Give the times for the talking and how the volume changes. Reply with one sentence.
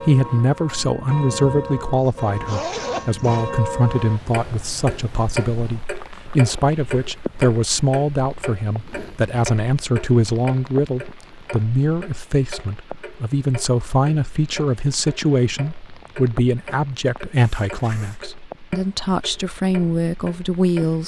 The talking can be heard from 0.1 to 21.0 s, at a steady volume.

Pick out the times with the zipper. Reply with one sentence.
You can hear the zipper from 2.0 to 3.5 s and from 17.4 to 18.2 s.